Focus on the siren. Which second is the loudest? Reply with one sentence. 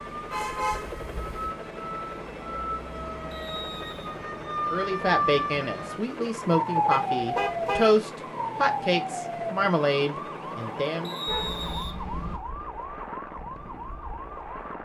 The loudest moment of the siren is at 7 seconds.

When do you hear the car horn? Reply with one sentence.
You can hear the car horn from 0.3 to 1.5 s, from 6.9 to 8.0 s and from 11.2 to 12.4 s.